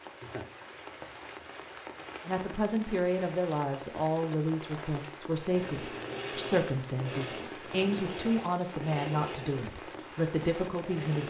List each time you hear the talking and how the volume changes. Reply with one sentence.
The talking can be heard from 2.2 to 11.2 s, at a steady volume.